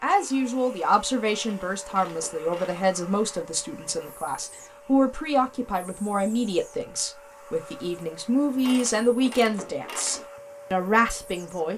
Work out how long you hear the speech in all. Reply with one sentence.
You can hear the speech for 12 seconds altogether.